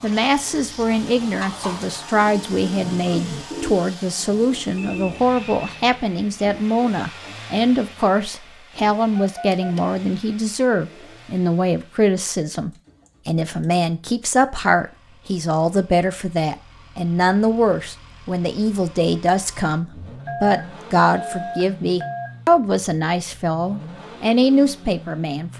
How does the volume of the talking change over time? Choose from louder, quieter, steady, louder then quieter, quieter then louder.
steady.